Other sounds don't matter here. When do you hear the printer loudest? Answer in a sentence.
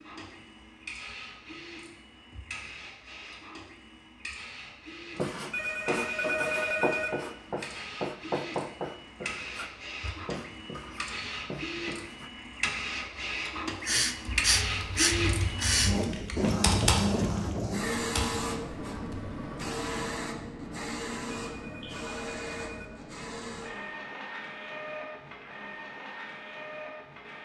The volume of the printer peaks at 17 seconds.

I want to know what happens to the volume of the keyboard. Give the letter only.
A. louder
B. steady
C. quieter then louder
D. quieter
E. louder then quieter
E.